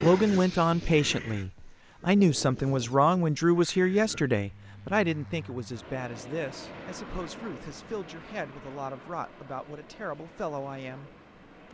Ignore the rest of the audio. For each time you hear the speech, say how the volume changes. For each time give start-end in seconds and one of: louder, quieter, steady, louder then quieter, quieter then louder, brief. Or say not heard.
0.0-11.6 quieter.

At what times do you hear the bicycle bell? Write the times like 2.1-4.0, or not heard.
not heard.